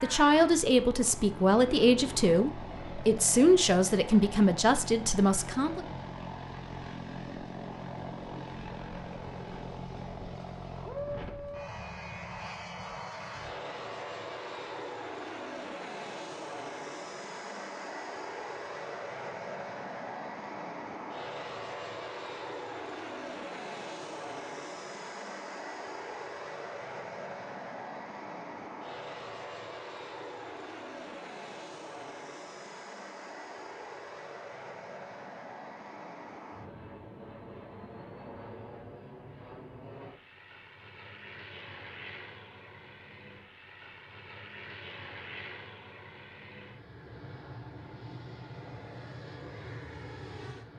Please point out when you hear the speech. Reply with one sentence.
You can hear the speech from 0.0 to 5.8 s.